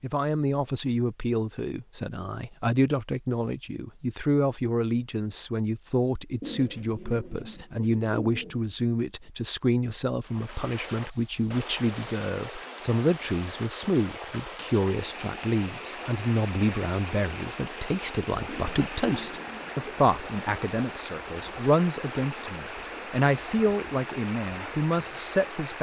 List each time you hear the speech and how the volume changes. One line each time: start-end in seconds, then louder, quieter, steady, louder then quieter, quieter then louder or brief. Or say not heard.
0.0-25.7 steady.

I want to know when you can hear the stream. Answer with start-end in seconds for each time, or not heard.
10.2-25.7.